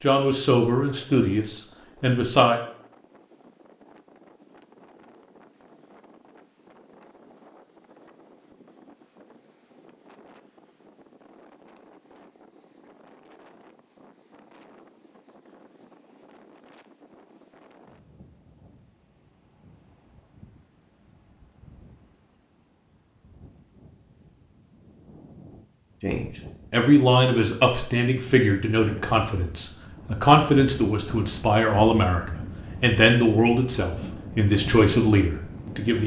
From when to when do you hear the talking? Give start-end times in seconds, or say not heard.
0.0-2.6, 26.0-36.0.